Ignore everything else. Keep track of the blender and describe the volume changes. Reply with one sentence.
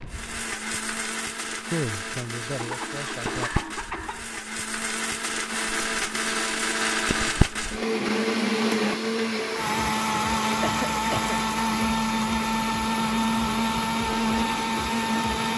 The loudness of the blender goes up.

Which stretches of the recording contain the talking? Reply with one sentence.
You can hear the talking from 1.7 to 3.5 s.